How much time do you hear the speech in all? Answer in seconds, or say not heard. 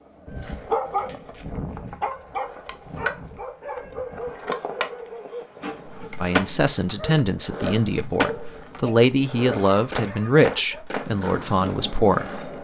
6 s.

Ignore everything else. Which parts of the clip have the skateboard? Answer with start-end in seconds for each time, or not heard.
0.0-12.5.